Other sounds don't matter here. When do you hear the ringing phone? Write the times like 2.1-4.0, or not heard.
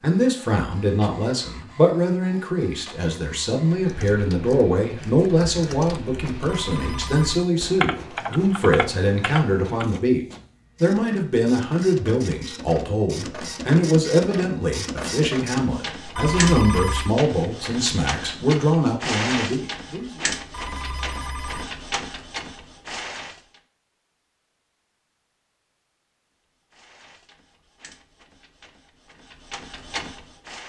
6.5-7.5, 16.1-17.1, 20.5-21.6.